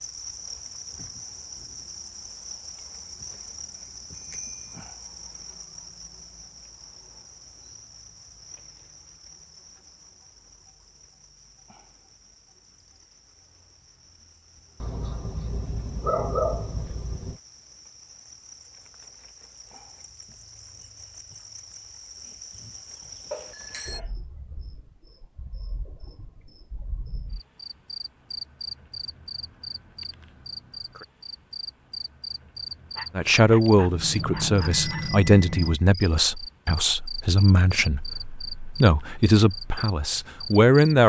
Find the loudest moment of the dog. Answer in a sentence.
The loudest moment of the dog is at 16 seconds.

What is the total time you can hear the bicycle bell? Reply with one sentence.
You can hear the bicycle bell for 3 seconds altogether.